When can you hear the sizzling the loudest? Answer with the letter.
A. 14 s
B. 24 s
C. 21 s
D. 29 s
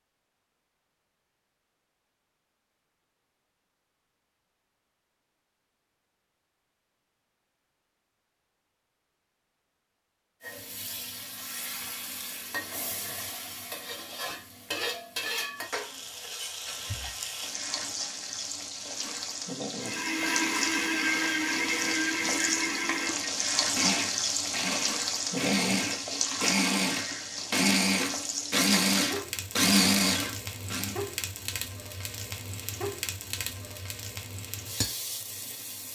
B.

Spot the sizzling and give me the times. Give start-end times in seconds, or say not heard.
10.4-35.9.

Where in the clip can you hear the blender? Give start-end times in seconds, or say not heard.
19.8-30.9.